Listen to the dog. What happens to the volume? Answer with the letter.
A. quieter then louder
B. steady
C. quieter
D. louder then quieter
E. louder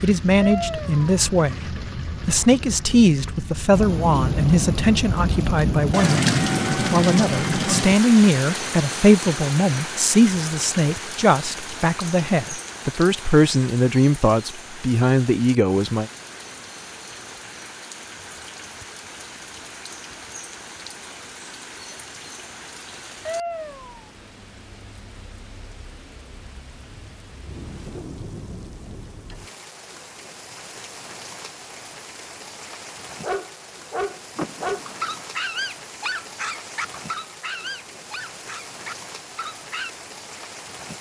C.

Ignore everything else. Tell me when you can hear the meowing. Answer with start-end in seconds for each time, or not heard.
0.4-1.1, 23.2-24.1.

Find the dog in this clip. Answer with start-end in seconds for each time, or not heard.
33.2-39.9.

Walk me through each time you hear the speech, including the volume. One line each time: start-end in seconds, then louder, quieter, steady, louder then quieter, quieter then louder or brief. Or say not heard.
0.0-16.1 steady.